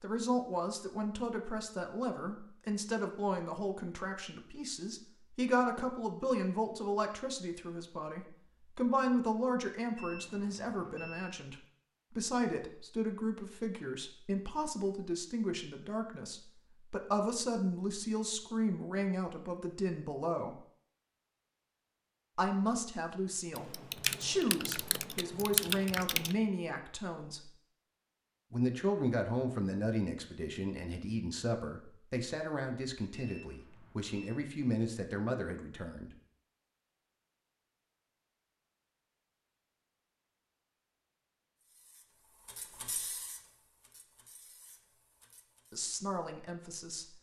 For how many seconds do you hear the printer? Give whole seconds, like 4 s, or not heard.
4 s.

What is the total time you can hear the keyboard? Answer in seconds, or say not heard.
3 s.